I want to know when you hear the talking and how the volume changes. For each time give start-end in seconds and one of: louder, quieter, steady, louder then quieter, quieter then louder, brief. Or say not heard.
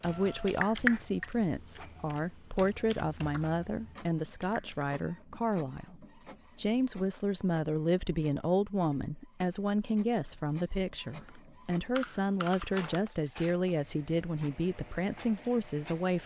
0.0-16.2 steady.